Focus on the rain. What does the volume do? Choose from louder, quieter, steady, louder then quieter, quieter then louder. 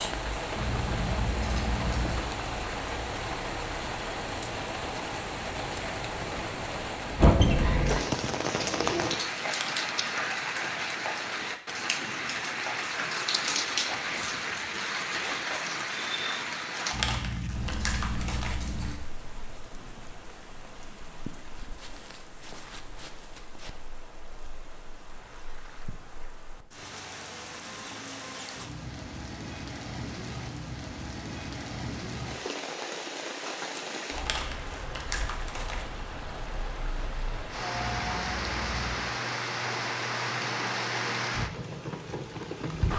quieter then louder.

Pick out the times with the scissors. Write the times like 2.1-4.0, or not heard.
0.6-2.3, 16.9-18.9, 37.7-39.1.